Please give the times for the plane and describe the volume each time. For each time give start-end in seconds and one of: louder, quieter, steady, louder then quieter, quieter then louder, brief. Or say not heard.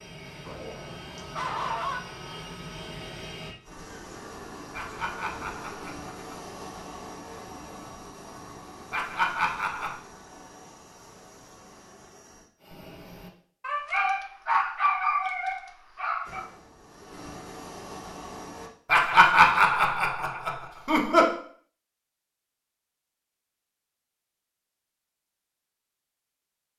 0.0-13.3 quieter
16.2-18.7 brief.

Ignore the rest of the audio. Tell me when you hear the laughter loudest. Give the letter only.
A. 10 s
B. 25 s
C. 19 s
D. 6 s
C.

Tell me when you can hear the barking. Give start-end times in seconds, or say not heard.
0.5-2.0, 13.6-16.4.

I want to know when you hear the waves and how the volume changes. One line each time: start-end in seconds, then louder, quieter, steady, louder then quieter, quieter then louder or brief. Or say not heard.
not heard.